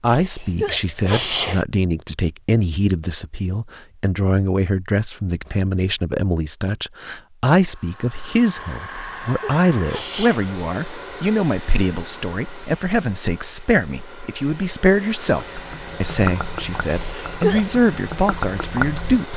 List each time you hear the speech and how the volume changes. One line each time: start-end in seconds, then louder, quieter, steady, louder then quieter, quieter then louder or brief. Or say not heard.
0.0-19.3 steady.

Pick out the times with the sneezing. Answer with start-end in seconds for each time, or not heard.
0.1-1.6, 8.8-10.4, 16.9-17.6.